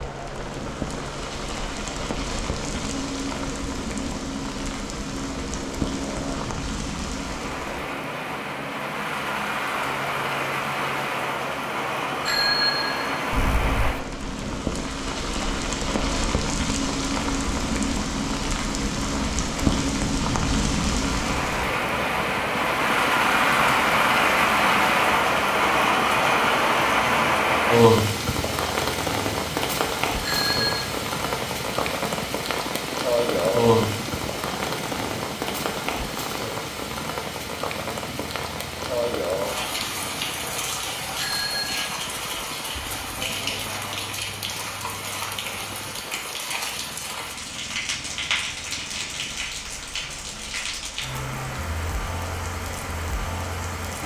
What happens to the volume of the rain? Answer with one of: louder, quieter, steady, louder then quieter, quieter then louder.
louder then quieter.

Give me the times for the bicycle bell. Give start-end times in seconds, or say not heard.
12.2-13.9, 30.2-30.9, 41.1-41.8.